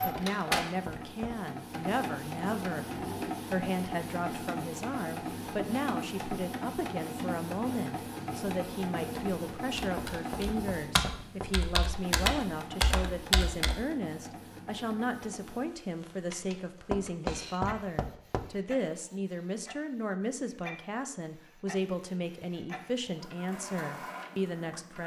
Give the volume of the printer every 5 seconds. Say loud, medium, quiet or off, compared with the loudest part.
loud, loud, medium, quiet, medium.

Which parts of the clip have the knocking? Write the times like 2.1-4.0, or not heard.
0.1-1.4, 9.9-11.6, 16.9-18.6.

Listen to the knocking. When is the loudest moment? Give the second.
17 s.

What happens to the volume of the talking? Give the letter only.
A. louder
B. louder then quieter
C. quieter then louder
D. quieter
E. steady
E.